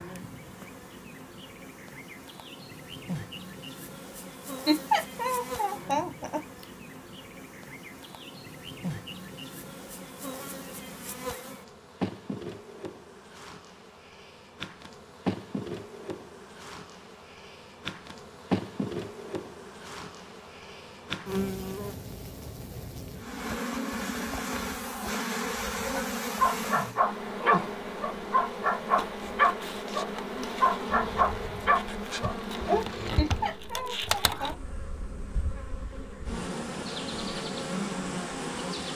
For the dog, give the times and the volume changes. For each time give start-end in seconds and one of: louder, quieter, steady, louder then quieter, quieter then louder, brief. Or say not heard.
25.9-32.9 steady.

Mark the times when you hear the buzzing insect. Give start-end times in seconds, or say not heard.
0.0-38.9.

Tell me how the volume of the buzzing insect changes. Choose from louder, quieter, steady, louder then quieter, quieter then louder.
louder.